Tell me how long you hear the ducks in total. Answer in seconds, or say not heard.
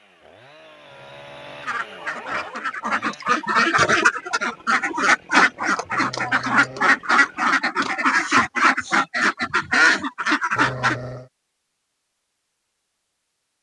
9 s.